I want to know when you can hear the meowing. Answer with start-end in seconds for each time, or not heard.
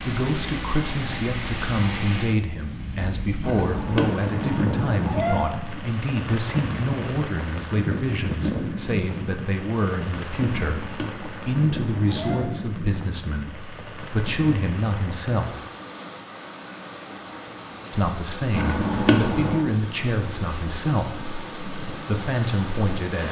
3.4-5.5, 10.7-12.4, 18.5-19.6.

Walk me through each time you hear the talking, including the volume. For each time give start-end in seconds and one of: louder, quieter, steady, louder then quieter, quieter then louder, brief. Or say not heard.
0.0-15.6 steady
17.9-23.2 quieter then louder.